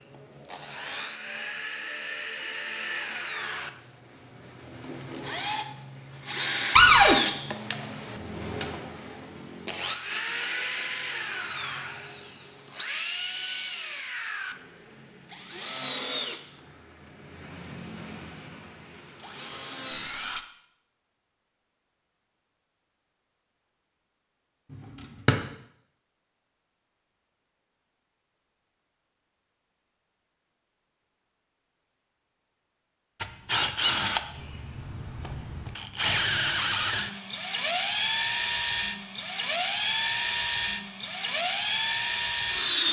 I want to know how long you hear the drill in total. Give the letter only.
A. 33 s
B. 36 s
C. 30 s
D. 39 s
C.